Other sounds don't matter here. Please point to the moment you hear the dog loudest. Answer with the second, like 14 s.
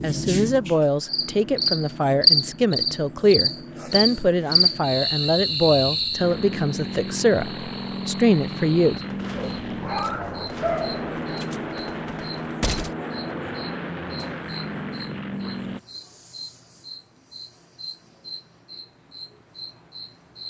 11 s.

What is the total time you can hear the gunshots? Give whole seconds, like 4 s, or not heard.
4 s.